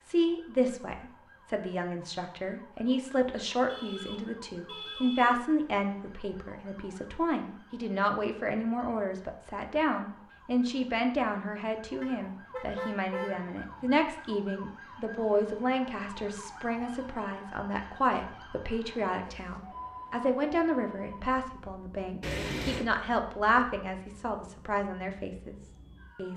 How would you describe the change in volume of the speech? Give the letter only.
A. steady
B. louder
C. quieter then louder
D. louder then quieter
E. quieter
A.